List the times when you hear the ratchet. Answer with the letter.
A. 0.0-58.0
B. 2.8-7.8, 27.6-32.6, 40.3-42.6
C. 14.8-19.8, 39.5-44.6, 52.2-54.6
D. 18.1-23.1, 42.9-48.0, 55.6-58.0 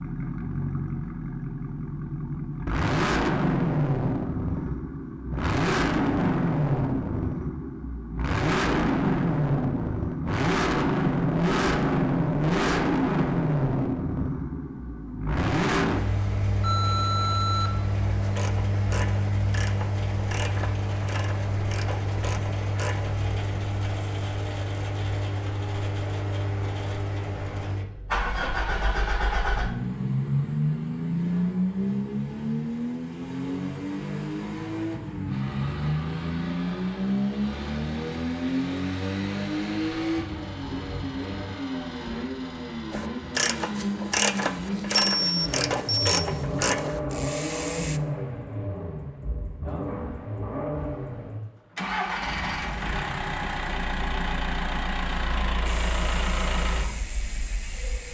D.